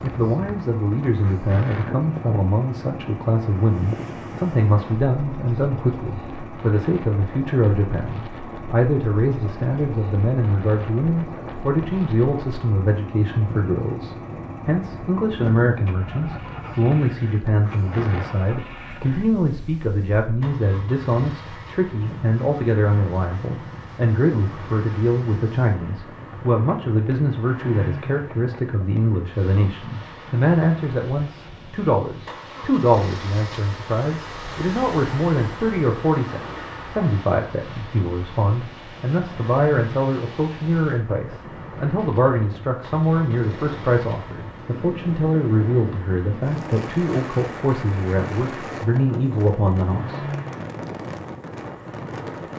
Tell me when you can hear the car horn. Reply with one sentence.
You can't hear the car horn here.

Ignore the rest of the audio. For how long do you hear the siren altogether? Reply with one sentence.
The siren can't be heard in this clip.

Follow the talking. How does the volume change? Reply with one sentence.
The loudness of the talking stays about the same.